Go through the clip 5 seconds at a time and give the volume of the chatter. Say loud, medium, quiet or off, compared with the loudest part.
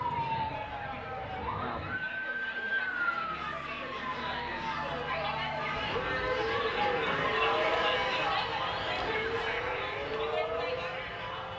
medium, loud, medium.